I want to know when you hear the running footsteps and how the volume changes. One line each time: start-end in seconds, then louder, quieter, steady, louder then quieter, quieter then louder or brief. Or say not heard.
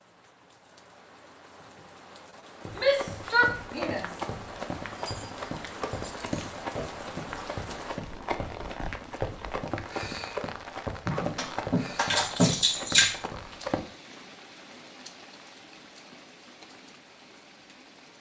2.6-13.8 steady.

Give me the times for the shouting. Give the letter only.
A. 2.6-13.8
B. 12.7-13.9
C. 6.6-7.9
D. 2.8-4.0
D.